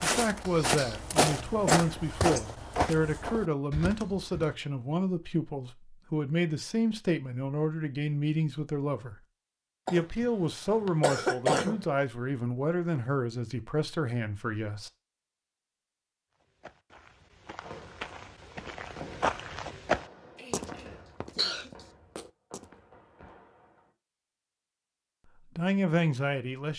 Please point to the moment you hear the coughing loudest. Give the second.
11 s.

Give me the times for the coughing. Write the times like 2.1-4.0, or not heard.
1.6-2.5, 9.8-11.8, 20.4-21.7.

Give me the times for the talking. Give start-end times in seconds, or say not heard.
0.0-9.2, 9.9-14.9, 25.4-26.7.